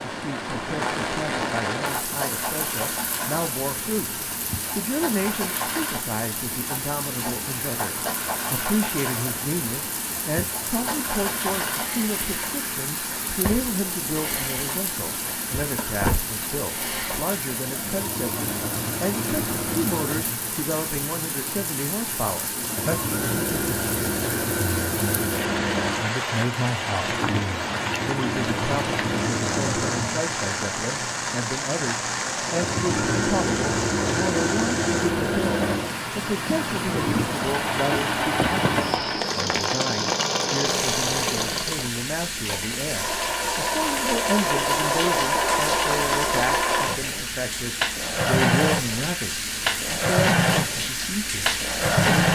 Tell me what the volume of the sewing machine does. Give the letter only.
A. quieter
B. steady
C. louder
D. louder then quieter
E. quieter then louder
C.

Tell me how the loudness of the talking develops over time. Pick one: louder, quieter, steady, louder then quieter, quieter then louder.
steady.